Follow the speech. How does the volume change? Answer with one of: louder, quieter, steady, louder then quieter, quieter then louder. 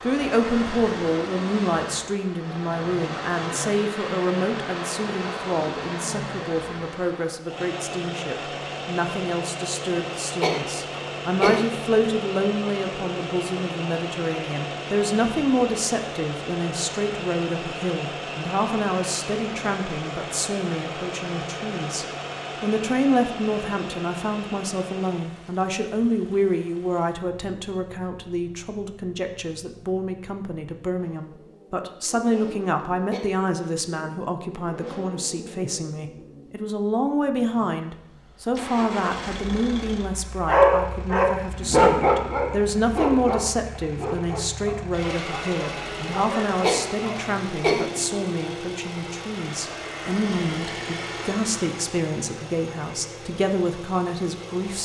steady.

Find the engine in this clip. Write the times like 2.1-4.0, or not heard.
0.0-54.8.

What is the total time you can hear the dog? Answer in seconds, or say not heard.
7 s.